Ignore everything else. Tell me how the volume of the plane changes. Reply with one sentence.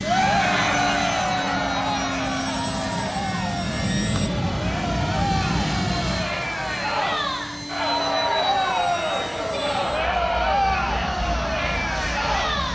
The volume of the plane goes down.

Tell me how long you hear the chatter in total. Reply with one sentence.
You can hear the chatter for 13 seconds altogether.